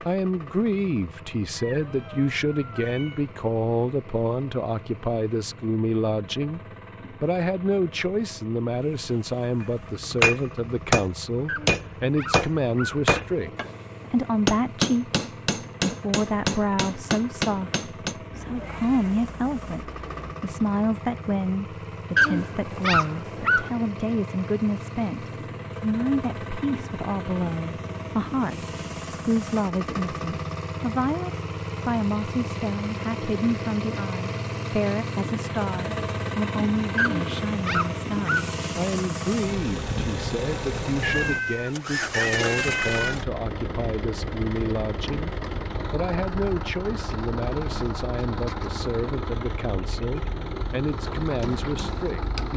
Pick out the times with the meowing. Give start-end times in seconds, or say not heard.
1.6-3.3, 18.3-20.4, 41.0-43.1.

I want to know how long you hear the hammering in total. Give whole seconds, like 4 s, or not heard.
10 s.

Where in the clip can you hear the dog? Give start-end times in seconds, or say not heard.
11.4-13.0, 22.1-23.7, 37.0-38.5.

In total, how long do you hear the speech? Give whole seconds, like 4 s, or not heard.
51 s.